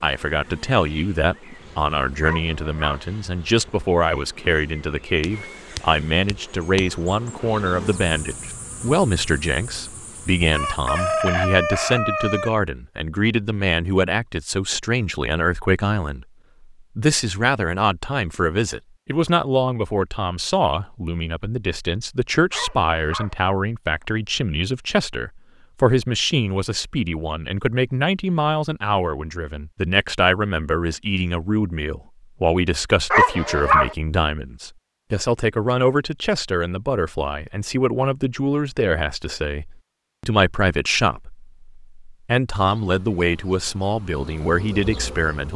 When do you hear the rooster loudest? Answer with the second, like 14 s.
11 s.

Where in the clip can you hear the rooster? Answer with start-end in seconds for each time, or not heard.
10.5-12.5.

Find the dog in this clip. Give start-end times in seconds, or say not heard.
2.2-3.0, 22.5-23.4, 33.1-34.0.